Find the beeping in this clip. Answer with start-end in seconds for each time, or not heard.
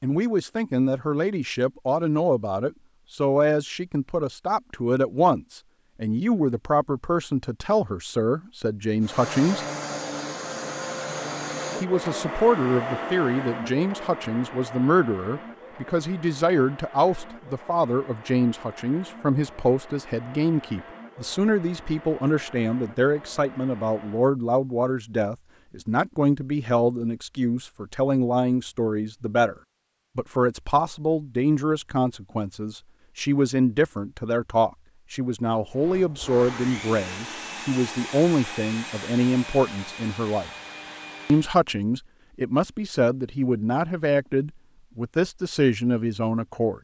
not heard.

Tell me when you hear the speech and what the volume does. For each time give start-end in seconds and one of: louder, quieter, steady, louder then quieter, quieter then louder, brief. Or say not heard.
0.0-9.7 steady
11.8-29.6 steady
30.1-40.5 steady
41.2-46.7 steady.